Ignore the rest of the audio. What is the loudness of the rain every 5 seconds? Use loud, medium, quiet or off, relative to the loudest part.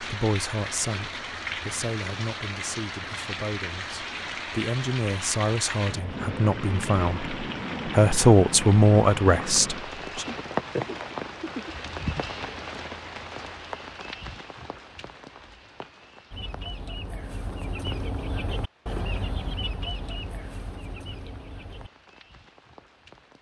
loud, loud, loud, quiet, quiet.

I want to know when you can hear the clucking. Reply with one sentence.
You can hear the clucking from 16.3 to 21.9 s.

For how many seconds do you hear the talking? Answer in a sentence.
The talking can be heard for 10 seconds in total.